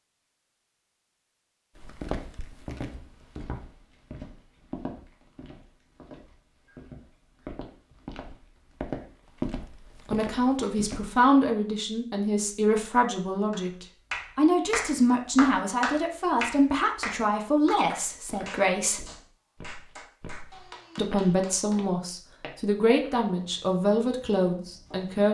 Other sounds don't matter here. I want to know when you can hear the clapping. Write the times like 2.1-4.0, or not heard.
13.5-21.9.